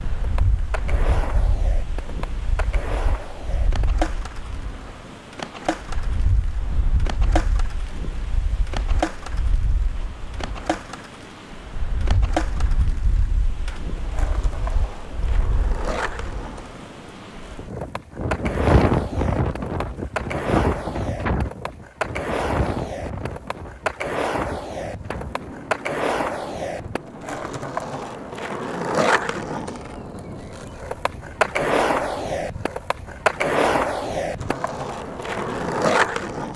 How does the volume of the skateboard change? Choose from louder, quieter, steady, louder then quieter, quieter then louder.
louder.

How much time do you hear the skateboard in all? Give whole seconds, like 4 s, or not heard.
36 s.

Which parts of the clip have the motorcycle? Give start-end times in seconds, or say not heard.
not heard.